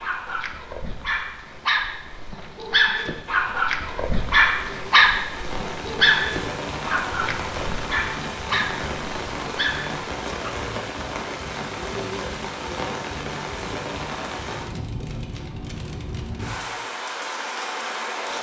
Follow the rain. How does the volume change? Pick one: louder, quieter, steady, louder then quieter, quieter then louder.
louder.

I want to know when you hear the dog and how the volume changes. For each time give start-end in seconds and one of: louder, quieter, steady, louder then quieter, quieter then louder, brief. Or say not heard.
0.0-10.5 louder then quieter.